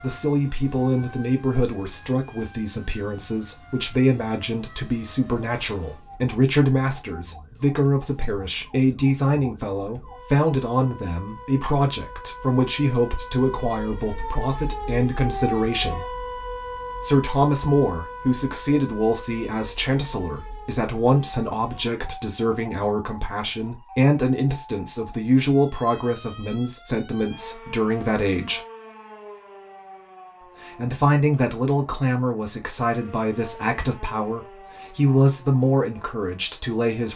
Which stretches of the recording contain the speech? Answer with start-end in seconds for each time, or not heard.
0.0-16.1, 17.0-28.6, 30.6-37.1.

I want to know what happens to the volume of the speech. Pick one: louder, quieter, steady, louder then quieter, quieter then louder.
steady.